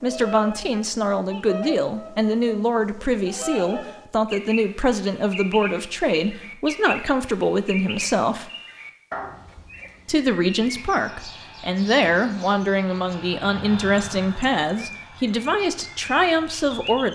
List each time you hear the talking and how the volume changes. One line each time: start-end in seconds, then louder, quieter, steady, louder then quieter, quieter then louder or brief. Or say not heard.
0.0-8.4 steady
10.1-17.1 steady.